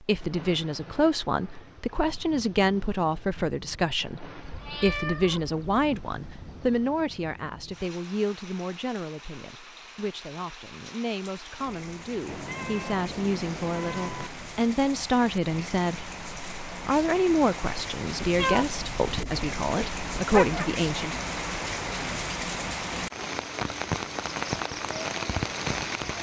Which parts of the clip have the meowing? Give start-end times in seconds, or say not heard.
4.4-6.8, 12.2-14.3, 18.2-20.7.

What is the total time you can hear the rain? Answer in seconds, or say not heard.
26 s.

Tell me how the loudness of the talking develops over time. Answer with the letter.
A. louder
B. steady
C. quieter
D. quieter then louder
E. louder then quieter
D.